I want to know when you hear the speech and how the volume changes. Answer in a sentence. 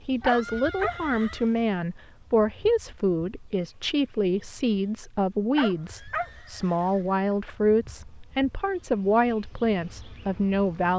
The speech can be heard from 0.1 to 10.9 s, at a steady volume.